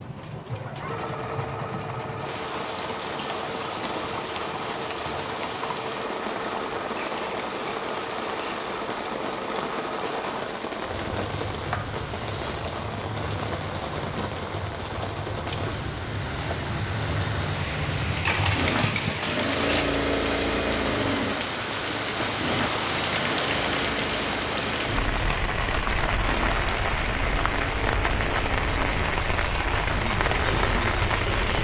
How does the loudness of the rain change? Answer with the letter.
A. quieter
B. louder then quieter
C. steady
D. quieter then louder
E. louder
E.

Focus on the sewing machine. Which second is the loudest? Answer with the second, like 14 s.
20 s.